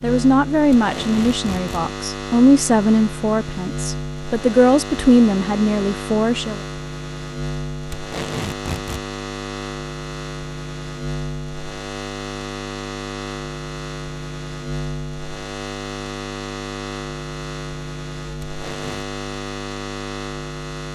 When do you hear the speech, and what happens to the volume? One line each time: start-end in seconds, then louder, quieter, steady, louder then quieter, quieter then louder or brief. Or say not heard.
0.0-6.6 steady.